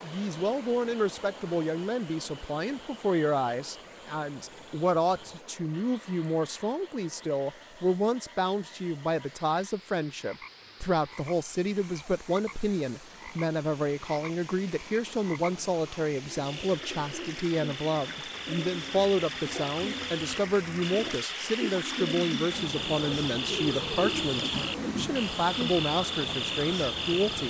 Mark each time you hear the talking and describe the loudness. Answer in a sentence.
You can hear the talking from 0.0 to 27.4 s, at a steady volume.